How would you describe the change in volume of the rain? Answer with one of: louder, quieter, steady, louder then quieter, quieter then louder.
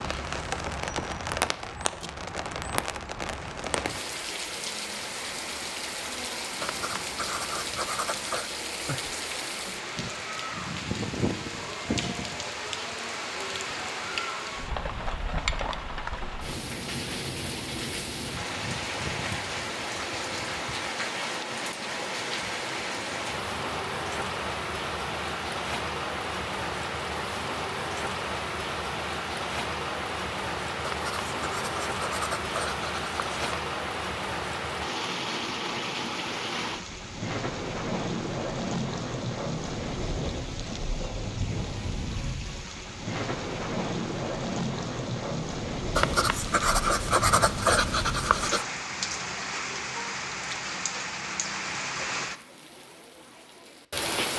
steady.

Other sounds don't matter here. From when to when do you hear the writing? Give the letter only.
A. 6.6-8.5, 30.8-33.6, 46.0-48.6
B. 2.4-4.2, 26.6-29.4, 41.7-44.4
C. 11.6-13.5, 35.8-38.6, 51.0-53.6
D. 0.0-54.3
A.